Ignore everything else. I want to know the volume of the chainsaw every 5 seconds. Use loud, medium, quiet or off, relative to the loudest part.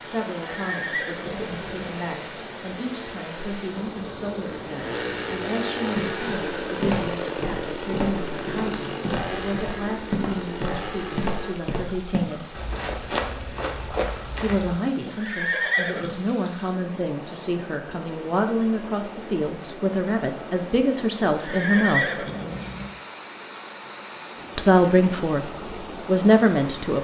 medium, loud, loud, off, off, off.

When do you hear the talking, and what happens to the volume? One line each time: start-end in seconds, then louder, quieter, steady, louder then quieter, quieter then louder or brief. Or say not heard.
0.0-12.6 steady
14.4-22.2 louder
24.6-26.9 brief.